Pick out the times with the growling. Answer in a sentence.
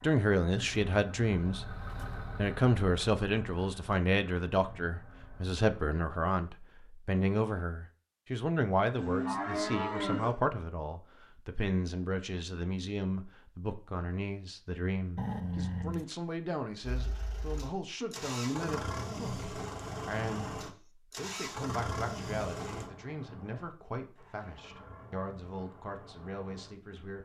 You can hear the growling from 15.2 to 16.1 s.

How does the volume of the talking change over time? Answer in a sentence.
The loudness of the talking goes down.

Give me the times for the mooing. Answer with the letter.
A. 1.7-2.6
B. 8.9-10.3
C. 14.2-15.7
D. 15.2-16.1
B.